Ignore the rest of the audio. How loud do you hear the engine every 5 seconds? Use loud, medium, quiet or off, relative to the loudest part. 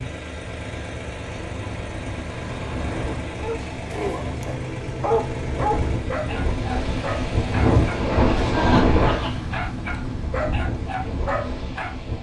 loud, loud, off.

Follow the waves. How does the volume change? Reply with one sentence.
The volume of the waves goes up, then down.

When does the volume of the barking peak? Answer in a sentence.
The volume of the barking peaks at 5 seconds.